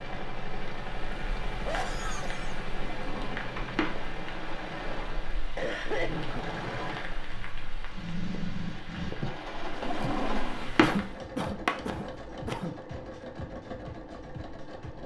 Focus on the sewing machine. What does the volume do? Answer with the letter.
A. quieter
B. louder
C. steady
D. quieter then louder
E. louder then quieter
C.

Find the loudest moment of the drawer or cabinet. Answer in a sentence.
The loudest moment of the drawer or cabinet is at 11 seconds.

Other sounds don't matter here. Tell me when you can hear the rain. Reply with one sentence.
You can hear the rain from 0.2 to 11.2 s.